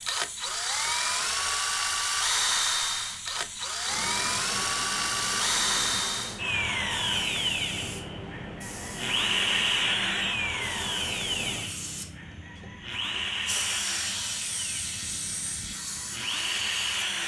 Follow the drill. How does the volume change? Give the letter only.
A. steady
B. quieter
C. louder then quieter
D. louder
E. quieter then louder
B.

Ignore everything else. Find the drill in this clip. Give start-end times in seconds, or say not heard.
0.0-17.2.